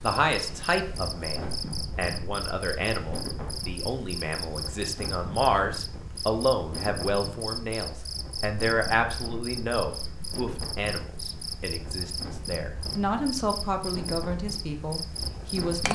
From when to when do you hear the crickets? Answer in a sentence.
You can hear the crickets from 0.0 to 15.8 s.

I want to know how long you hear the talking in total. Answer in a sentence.
The talking can be heard for 16 seconds in total.